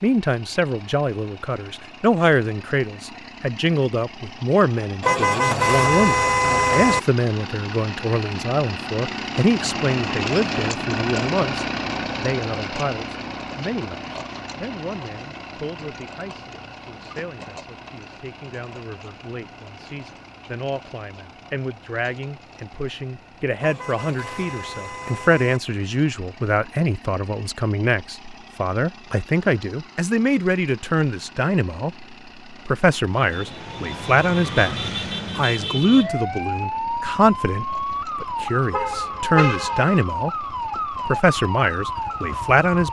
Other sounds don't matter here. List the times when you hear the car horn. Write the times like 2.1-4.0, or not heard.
5.0-7.0, 23.6-25.6, 38.7-40.0.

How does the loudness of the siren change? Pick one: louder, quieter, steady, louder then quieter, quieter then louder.
steady.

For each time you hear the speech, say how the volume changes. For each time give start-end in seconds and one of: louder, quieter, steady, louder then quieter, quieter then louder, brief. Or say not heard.
0.0-34.8 quieter then louder
35.4-42.8 steady.